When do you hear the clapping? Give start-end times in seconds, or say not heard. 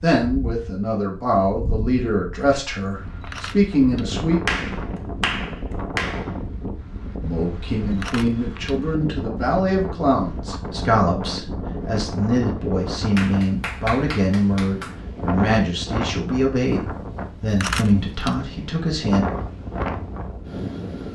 4.5-6.3, 13.2-14.9.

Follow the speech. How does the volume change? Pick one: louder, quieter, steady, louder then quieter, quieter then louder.
steady.